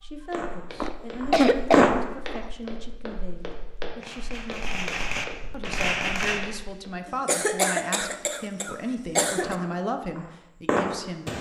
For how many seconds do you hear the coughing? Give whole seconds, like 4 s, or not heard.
4 s.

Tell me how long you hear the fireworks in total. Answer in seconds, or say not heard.
6 s.